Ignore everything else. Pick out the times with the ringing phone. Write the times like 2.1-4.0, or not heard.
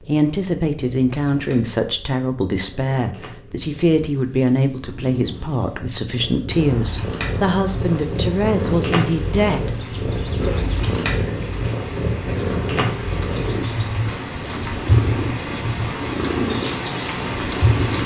10.3-11.1.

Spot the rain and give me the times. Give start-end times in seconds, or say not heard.
6.5-18.0.